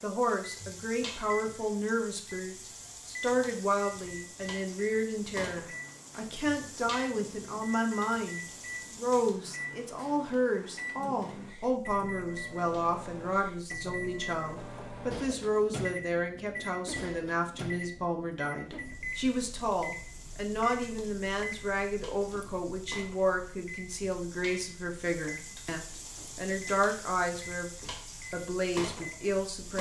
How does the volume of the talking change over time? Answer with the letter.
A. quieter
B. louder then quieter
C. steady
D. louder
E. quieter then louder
C.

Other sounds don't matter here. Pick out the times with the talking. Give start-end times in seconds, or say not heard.
0.0-29.7.